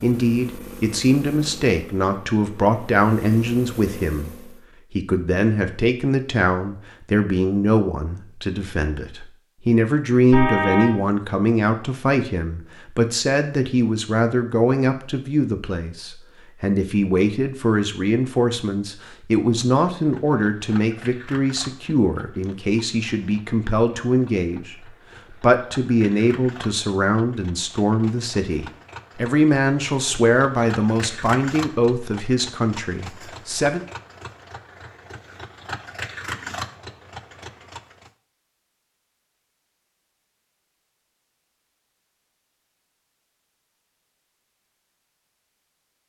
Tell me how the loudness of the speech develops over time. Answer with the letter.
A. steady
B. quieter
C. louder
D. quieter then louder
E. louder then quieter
A.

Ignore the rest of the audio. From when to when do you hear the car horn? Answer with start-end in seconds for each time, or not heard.
10.3-10.9.